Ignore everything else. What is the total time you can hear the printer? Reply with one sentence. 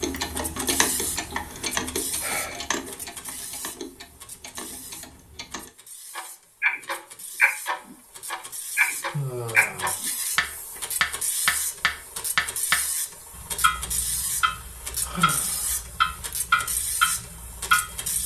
You can hear the printer for 18 seconds altogether.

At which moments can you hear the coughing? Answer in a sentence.
The coughing can't be heard in this clip.